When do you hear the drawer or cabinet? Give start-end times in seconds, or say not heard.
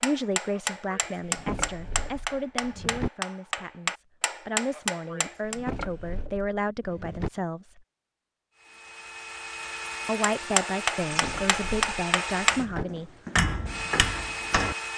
1.2-3.1, 5.4-7.3, 11.0-12.8.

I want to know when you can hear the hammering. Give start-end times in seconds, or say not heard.
0.0-5.6, 10.3-14.8.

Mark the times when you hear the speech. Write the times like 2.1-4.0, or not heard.
0.0-7.8, 10.1-13.1.